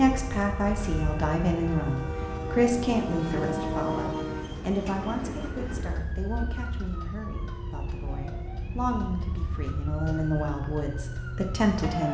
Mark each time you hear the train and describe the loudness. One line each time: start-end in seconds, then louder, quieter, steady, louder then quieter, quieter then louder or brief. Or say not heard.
0.0-6.0 louder then quieter.